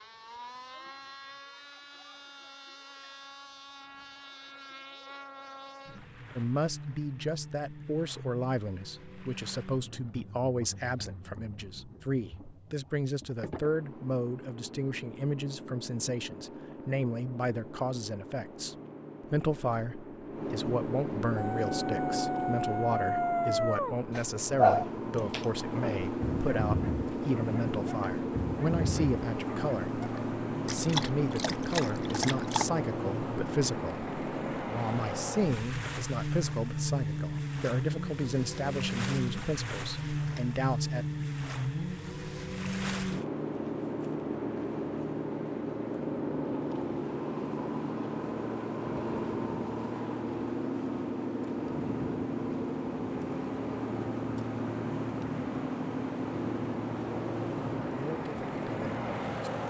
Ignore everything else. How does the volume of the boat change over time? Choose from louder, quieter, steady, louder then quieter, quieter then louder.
louder.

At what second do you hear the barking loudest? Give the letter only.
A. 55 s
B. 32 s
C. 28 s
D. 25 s
D.